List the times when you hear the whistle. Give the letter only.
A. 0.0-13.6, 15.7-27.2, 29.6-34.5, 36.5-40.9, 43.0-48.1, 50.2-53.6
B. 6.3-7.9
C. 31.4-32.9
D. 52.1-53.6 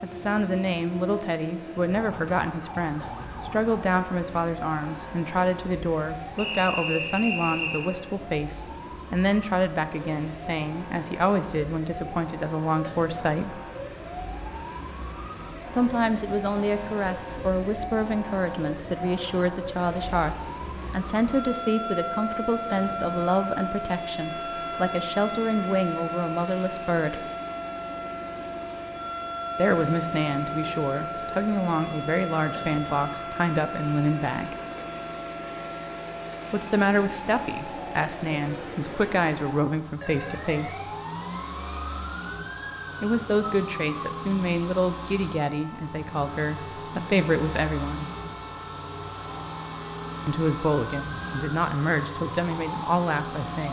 B.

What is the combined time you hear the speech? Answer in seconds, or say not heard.
43 s.